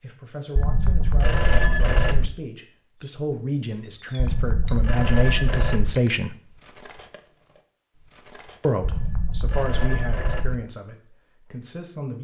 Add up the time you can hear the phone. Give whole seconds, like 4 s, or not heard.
5 s.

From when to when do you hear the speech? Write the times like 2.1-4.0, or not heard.
0.0-6.3, 8.6-12.1.